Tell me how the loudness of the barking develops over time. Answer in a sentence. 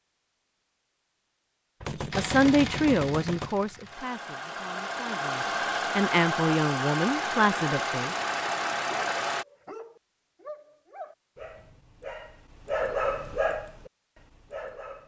The loudness of the barking goes up, then down.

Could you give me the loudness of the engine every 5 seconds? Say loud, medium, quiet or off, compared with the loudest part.
medium, loud, off.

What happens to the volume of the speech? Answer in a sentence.
The loudness of the speech goes down, then up.